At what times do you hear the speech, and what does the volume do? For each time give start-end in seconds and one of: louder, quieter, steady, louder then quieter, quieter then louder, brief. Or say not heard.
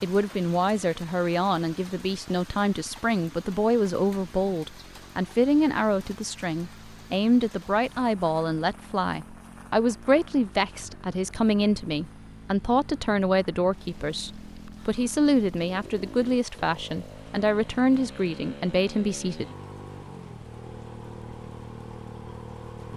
0.0-19.4 steady.